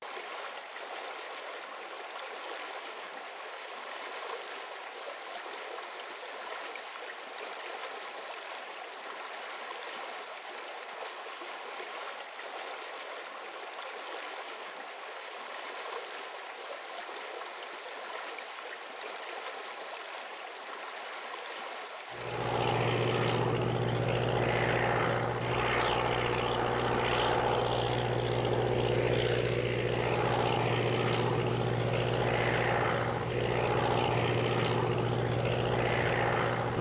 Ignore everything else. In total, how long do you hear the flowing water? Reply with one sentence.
The flowing water can be heard for 37 seconds in total.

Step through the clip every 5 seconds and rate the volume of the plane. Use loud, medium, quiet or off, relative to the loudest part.
off, off, off, off, loud, loud, loud, loud.